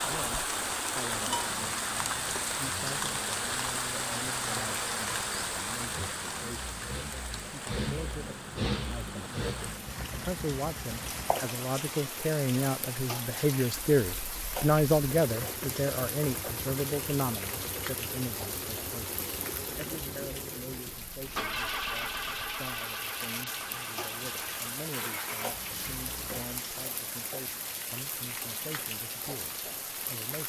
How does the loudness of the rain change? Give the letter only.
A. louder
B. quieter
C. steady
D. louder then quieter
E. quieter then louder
B.